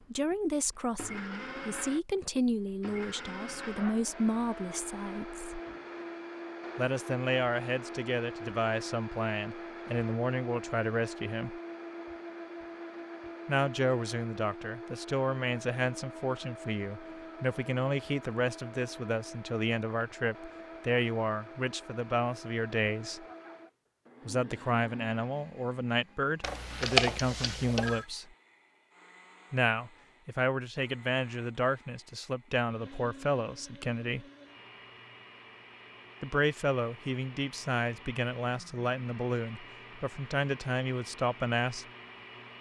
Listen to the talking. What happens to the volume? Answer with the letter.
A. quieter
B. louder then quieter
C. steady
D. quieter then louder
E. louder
C.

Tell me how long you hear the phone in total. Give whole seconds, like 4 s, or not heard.
2 s.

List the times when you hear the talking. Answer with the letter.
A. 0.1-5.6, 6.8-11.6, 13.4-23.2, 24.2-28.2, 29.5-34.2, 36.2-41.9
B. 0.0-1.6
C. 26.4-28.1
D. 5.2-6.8
A.